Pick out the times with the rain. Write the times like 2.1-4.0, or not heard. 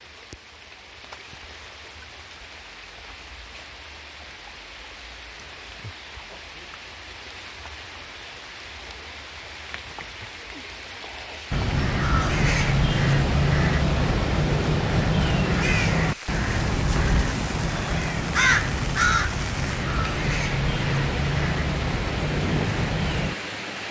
0.0-23.8.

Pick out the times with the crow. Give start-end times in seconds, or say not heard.
11.5-23.4.